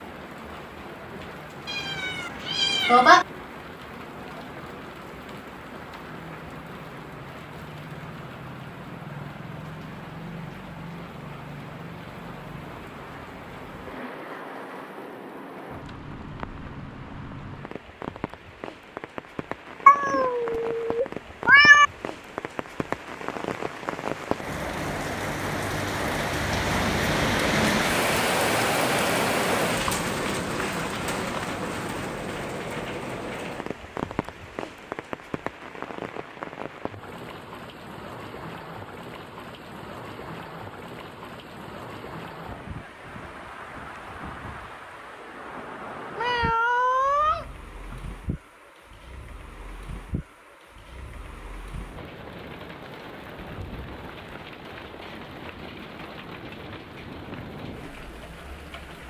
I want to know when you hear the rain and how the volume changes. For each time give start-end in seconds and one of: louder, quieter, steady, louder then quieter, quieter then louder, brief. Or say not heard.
0.0-59.0 louder then quieter.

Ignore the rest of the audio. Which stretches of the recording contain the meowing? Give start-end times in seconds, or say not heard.
1.6-3.2, 19.9-21.9, 46.1-48.0.